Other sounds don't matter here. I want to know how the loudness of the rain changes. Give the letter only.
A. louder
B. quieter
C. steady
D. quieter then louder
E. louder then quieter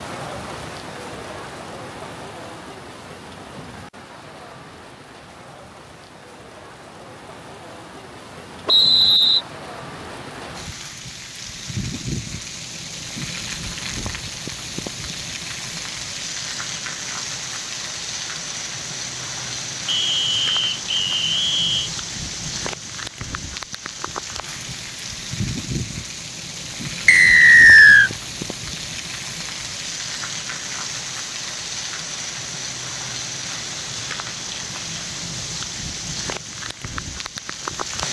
A.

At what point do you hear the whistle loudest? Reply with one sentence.
The loudest moment of the whistle is at 28 seconds.